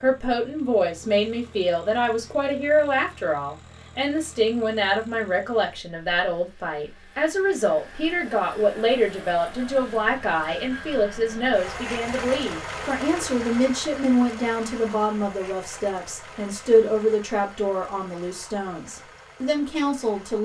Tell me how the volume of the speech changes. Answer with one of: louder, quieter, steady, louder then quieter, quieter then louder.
steady.